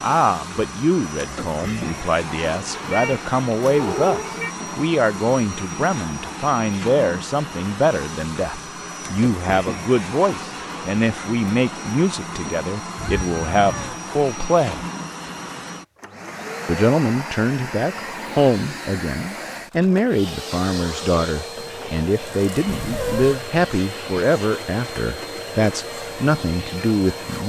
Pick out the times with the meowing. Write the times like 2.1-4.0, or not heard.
2.7-4.5, 12.9-14.0, 22.6-23.4.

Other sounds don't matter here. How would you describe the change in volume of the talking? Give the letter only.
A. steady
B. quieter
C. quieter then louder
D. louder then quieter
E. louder
A.